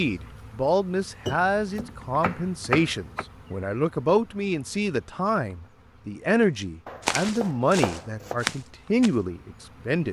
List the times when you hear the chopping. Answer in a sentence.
The chopping can be heard from 1.2 to 3.2 s and from 6.8 to 8.4 s.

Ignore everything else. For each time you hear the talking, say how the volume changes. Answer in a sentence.
The talking can be heard from 0.0 to 10.0 s, at a steady volume.